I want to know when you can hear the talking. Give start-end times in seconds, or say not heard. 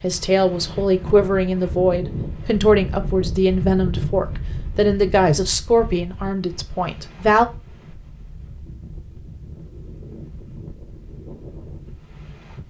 0.0-7.5.